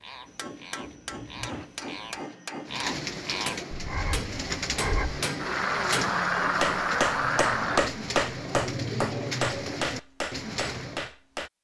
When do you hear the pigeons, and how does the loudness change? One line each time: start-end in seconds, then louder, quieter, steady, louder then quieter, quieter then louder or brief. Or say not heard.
2.6-11.1 steady.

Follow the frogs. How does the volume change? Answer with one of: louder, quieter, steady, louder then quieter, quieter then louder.
louder.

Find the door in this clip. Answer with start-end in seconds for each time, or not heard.
0.8-1.7.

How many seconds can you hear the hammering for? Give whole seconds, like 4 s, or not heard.
11 s.